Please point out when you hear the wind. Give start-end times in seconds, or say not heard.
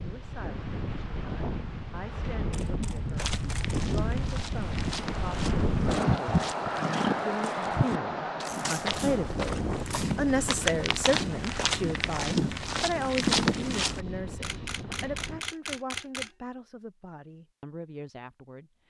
0.0-15.4.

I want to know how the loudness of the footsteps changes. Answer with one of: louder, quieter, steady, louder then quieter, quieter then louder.
louder.